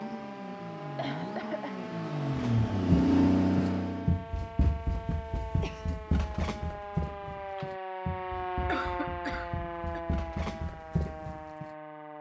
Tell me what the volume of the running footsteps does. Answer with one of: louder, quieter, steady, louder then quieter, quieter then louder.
quieter then louder.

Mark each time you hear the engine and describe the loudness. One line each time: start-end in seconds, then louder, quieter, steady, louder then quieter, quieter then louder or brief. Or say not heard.
0.0-4.2 louder.